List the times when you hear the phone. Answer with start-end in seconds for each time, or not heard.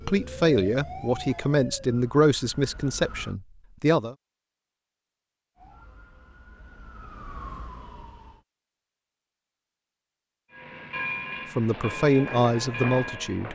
not heard.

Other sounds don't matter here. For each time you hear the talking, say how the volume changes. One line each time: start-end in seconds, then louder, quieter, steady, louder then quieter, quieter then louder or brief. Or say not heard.
0.1-4.2 quieter
11.6-13.4 brief.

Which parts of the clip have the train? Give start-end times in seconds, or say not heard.
10.5-13.4.